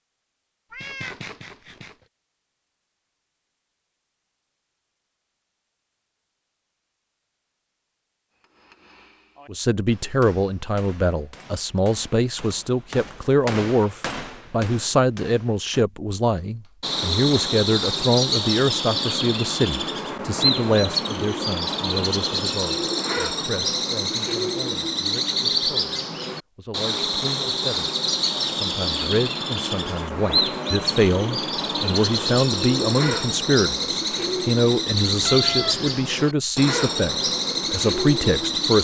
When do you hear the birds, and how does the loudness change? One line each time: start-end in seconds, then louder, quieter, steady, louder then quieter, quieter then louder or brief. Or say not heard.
16.8-38.7 steady.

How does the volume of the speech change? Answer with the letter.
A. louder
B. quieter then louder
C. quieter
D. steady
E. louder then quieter
B.